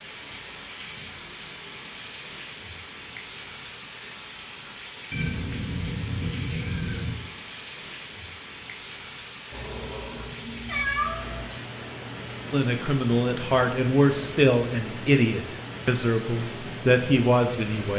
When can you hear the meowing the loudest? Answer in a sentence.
The loudest moment of the meowing is at 11 seconds.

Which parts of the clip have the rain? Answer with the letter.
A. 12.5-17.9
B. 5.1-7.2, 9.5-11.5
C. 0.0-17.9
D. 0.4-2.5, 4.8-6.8
C.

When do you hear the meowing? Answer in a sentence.
The meowing can be heard from 5.1 to 7.2 s and from 9.5 to 11.5 s.